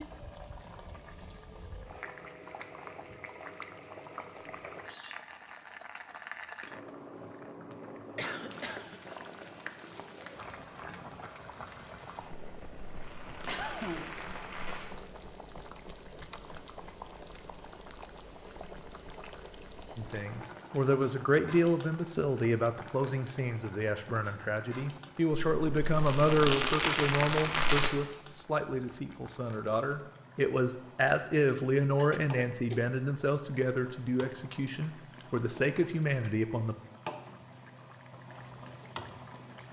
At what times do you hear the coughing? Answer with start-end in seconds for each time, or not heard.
8.2-9.0, 13.4-14.2, 31.9-33.0.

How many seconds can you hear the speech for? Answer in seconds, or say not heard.
17 s.